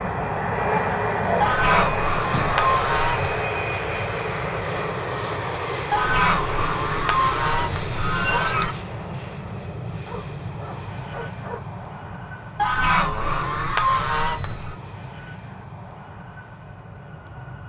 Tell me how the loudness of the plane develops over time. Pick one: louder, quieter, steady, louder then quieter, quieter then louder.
quieter.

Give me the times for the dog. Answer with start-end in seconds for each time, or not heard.
0.6-2.6, 10.1-11.7.